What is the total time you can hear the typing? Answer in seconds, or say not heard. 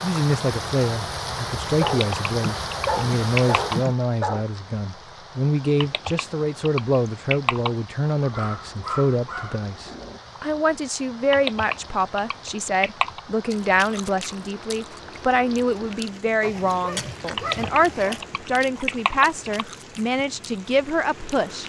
8 s.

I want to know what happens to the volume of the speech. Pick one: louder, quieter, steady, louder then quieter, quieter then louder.
steady.